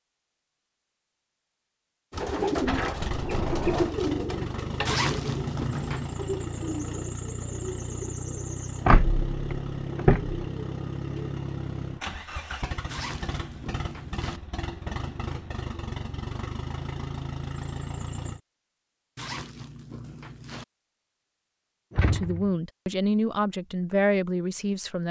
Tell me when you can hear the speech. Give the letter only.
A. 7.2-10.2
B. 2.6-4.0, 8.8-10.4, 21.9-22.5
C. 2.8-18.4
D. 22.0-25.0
D.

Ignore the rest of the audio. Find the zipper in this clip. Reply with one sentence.
You can hear the zipper from 4.8 to 6.2 s, from 12.8 to 14.4 s and from 19.1 to 20.6 s.